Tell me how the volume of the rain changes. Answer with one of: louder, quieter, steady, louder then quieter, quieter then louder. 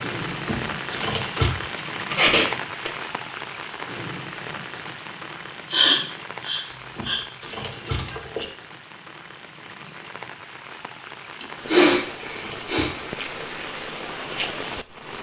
quieter then louder.